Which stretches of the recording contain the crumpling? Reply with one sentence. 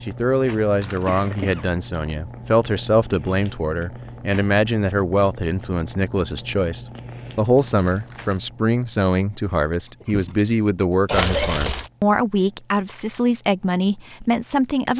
You can hear the crumpling from 0.8 to 1.6 s, from 7.5 to 8.4 s and from 11.1 to 11.9 s.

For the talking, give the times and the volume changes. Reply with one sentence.
You can hear the talking from 0.0 to 14.9 s, at a steady volume.